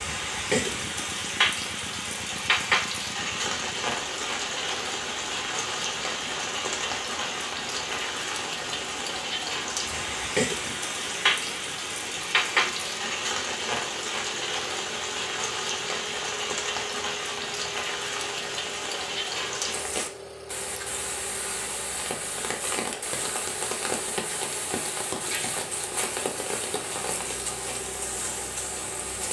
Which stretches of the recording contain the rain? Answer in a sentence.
The rain can be heard from 0.0 to 29.2 s.